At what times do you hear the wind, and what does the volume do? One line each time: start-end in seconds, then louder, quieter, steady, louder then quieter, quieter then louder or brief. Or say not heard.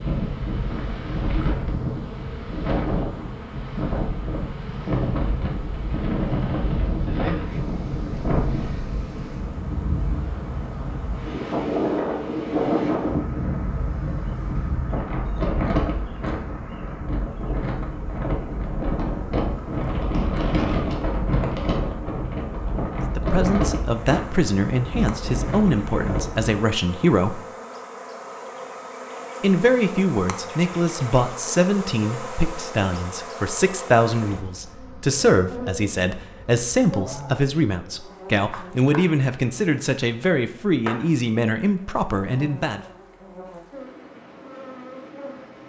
0.0-26.6 steady.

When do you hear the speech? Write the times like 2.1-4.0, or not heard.
23.0-27.4, 29.4-42.8.